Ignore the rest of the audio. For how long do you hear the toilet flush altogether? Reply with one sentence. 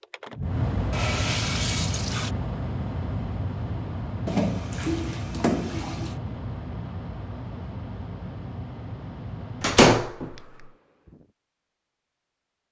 The toilet flush can be heard for 4 seconds in total.